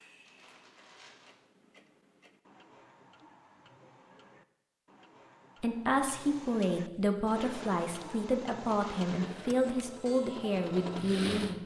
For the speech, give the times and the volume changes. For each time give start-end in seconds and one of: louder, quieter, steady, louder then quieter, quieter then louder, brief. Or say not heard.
5.6-11.6 steady.